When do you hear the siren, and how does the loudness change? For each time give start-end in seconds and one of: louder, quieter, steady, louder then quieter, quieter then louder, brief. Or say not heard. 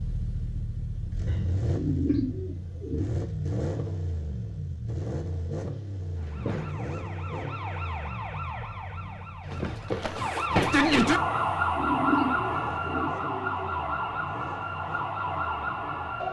6.2-16.2 louder then quieter.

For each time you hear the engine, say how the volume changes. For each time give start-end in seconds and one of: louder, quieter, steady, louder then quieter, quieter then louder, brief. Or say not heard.
0.0-16.1 quieter.